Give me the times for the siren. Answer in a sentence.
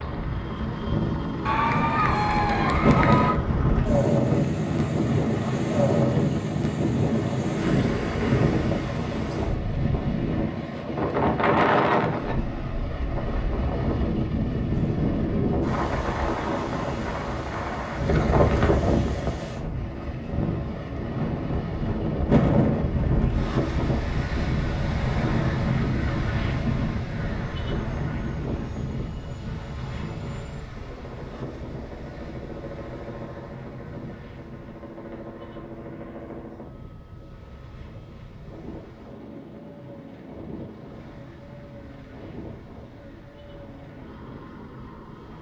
You can't hear the siren here.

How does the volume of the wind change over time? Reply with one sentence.
The loudness of the wind goes down.